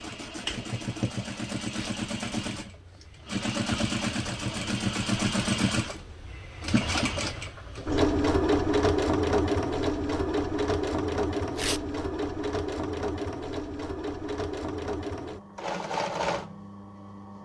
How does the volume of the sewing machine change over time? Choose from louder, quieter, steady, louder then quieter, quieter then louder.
louder then quieter.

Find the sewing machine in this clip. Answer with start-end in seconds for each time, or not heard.
0.0-17.4.